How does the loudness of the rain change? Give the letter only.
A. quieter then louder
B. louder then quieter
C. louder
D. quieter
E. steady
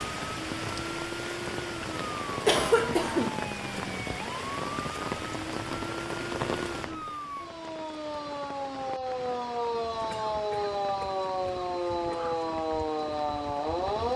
D.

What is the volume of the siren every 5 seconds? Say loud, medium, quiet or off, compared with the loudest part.
medium, medium, loud.